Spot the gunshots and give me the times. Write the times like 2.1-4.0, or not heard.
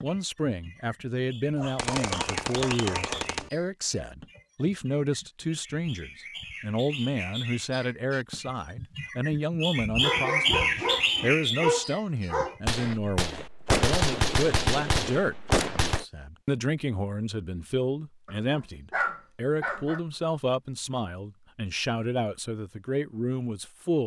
1.8-3.5, 12.7-16.1.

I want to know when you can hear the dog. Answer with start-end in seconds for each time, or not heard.
1.6-3.3, 10.0-12.6, 18.2-20.0.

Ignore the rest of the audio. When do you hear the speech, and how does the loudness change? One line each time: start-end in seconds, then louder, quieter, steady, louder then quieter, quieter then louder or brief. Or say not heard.
0.0-24.0 steady.